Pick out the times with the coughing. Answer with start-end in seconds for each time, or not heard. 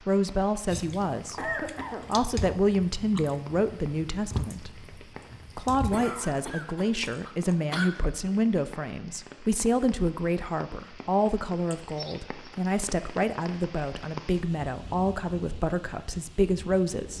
1.4-2.1, 5.9-7.9, 11.7-12.6.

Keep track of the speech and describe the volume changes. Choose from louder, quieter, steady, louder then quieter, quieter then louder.
steady.